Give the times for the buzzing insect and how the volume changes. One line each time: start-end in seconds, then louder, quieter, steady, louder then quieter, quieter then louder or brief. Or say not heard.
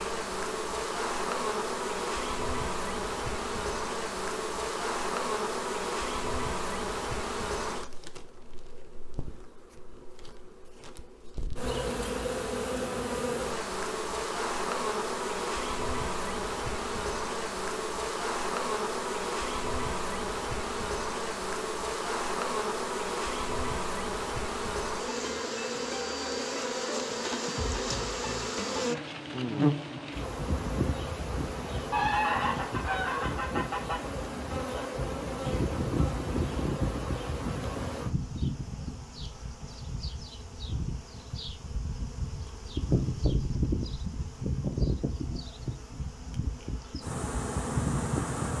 0.0-48.5 steady.